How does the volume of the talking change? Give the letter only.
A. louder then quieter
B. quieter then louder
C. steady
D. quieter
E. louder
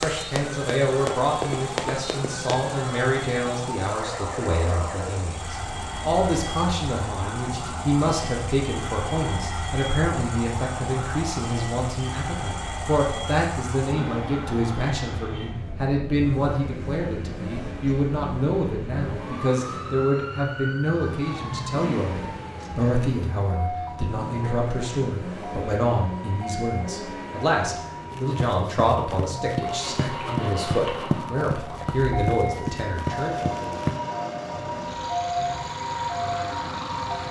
C.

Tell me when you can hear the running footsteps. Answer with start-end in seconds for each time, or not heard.
0.0-2.6, 28.1-34.0.